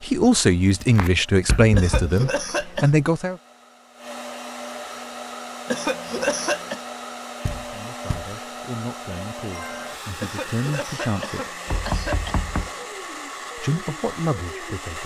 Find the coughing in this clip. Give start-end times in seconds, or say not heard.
1.8-2.9, 5.7-6.8, 10.2-12.8.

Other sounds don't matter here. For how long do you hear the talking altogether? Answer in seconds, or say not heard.
9 s.